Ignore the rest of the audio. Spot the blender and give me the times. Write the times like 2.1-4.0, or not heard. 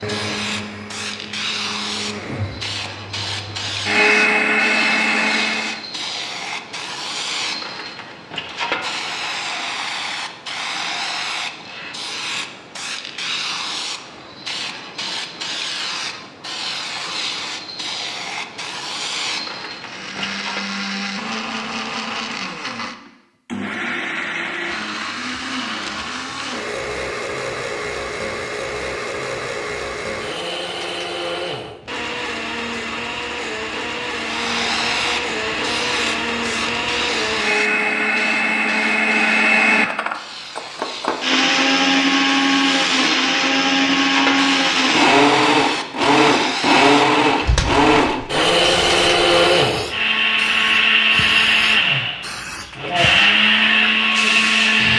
0.0-5.8, 19.8-54.9.